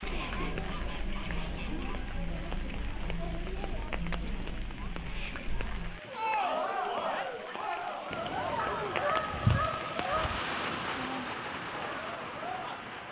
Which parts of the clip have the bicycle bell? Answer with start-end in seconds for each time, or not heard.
not heard.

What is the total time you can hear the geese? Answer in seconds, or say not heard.
4 s.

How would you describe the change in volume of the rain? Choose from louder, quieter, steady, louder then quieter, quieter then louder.
louder.